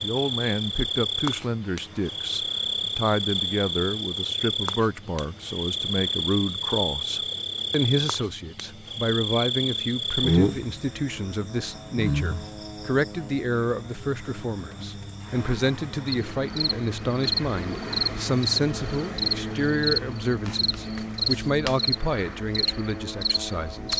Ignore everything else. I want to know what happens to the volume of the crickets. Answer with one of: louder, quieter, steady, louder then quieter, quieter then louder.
steady.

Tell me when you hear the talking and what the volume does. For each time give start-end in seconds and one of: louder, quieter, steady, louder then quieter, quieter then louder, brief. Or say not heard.
0.0-23.9 steady.